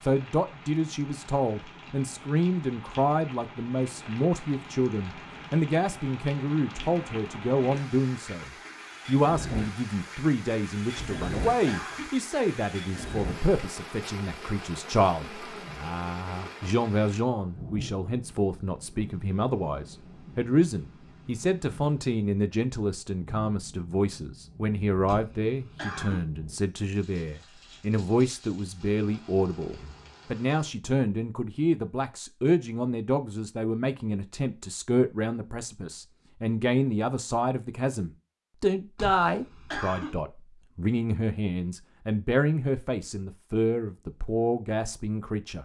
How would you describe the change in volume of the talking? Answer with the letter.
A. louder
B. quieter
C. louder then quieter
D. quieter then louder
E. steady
E.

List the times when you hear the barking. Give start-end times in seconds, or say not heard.
not heard.